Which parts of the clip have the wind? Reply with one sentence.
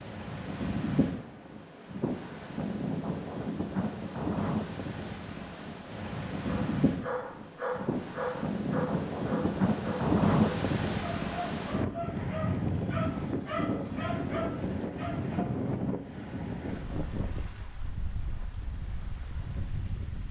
You can hear the wind from 0.0 to 20.2 s.